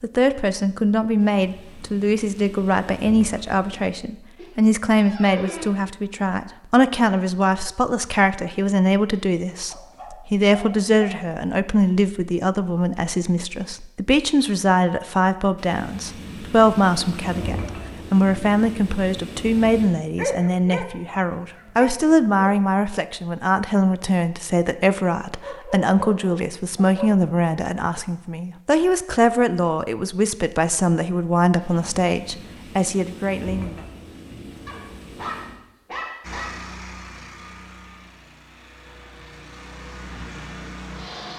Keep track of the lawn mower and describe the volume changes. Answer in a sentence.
The volume of the lawn mower goes down, then up.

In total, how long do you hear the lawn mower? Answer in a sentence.
You can hear the lawn mower for 5 seconds altogether.